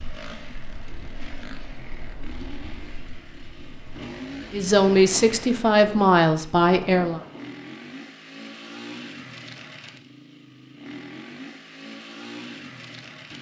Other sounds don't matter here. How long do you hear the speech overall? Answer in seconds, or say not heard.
3 s.